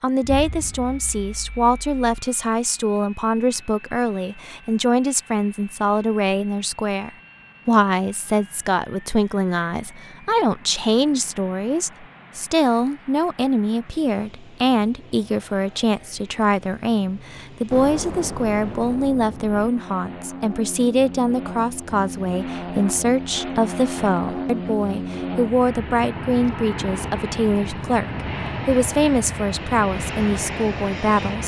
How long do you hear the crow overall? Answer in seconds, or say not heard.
not heard.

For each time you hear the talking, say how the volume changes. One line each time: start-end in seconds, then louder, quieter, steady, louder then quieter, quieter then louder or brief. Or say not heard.
0.0-31.4 steady.